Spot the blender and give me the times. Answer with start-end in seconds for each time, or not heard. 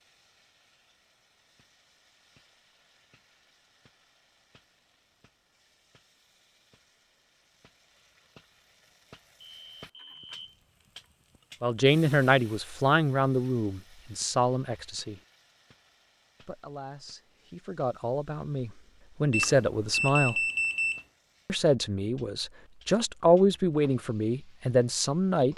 not heard.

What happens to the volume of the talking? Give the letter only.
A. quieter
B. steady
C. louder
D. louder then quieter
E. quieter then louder
E.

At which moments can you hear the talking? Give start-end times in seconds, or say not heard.
11.6-15.2, 16.4-20.4, 21.4-25.5.